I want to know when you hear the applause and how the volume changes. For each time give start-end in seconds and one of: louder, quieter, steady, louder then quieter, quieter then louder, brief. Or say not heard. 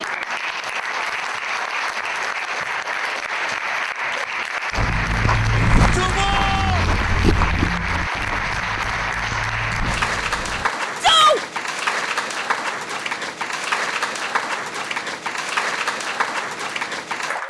0.0-17.4 steady.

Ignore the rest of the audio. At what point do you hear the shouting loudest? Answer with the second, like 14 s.
11 s.